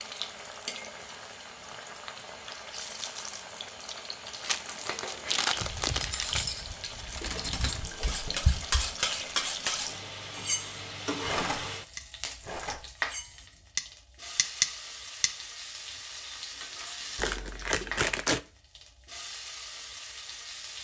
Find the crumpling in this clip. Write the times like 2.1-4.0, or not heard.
4.4-6.5, 17.1-18.4.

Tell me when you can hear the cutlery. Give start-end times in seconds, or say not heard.
5.6-15.3.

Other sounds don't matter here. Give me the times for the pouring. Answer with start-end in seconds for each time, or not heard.
6.8-8.8.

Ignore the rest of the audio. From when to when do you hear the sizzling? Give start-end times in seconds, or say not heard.
0.0-20.7.